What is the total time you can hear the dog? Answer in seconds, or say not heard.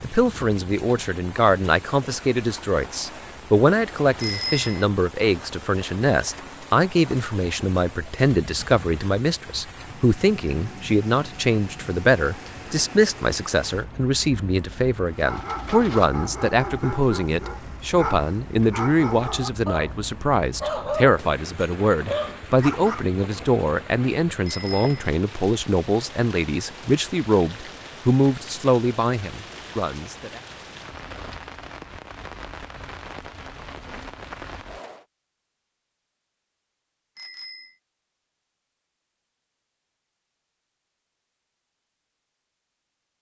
8 s.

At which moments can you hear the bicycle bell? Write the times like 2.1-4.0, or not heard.
4.2-4.8, 24.4-25.1, 37.1-37.8.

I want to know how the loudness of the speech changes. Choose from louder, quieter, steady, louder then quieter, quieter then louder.
steady.